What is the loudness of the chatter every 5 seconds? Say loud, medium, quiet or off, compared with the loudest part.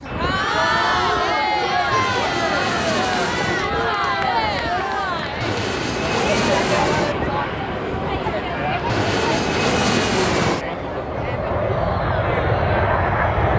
loud, loud, medium.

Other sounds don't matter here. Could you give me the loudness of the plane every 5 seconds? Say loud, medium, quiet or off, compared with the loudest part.
medium, loud, loud.